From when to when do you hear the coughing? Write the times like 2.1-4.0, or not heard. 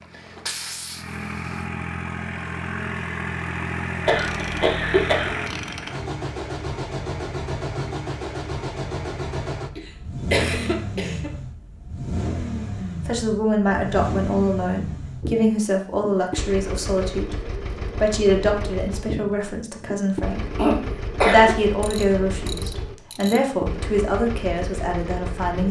4.0-5.3, 9.8-11.3, 20.6-21.6.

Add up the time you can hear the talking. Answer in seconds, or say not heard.
12 s.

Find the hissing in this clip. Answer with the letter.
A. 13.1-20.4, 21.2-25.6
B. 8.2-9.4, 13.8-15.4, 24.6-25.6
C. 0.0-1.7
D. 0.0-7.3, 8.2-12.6
C.